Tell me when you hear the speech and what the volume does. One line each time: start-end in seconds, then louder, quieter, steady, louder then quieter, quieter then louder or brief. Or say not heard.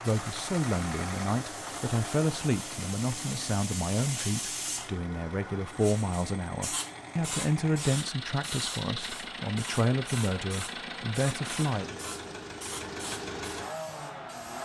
0.0-11.9 steady.